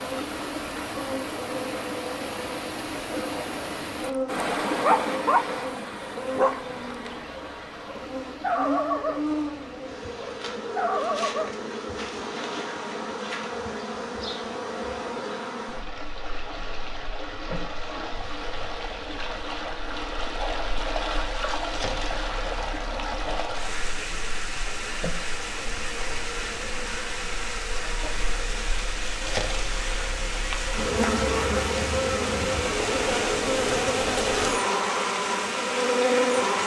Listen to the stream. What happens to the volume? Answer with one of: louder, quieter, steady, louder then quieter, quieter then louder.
quieter then louder.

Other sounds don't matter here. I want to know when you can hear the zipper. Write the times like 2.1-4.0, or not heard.
not heard.